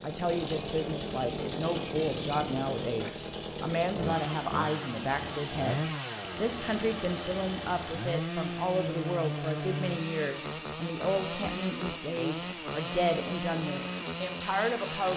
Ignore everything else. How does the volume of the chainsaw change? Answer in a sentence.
The volume of the chainsaw stays about the same.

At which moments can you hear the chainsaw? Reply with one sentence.
The chainsaw can be heard from 0.0 to 15.1 s.